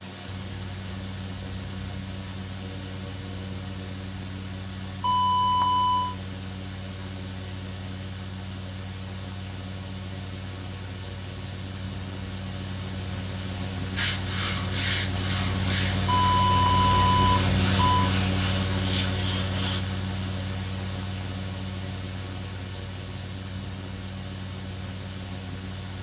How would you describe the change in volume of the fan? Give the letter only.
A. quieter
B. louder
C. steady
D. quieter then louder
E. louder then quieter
E.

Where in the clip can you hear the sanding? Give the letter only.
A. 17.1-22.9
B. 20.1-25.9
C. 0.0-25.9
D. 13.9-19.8
D.